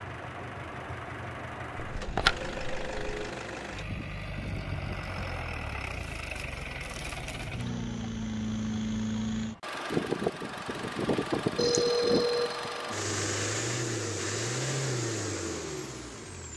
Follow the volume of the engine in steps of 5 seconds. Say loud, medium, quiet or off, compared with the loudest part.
medium, loud, loud, medium.